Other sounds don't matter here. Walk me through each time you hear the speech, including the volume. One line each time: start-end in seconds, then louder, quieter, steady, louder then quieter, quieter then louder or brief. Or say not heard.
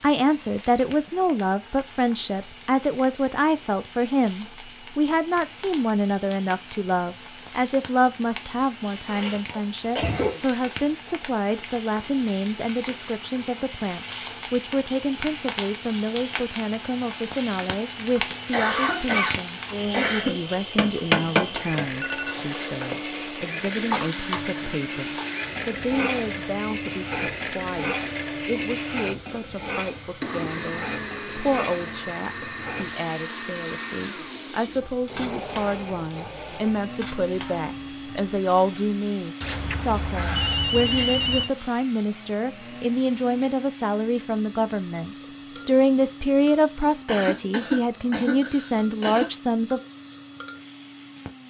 0.0-49.8 quieter then louder.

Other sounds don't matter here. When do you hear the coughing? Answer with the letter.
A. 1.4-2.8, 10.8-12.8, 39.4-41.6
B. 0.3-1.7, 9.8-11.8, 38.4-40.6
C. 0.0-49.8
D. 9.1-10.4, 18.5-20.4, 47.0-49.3
D.